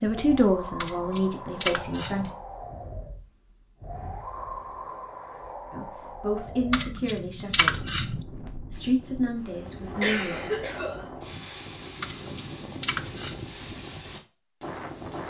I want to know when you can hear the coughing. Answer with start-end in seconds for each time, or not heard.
10.0-11.7.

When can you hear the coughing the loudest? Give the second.
10 s.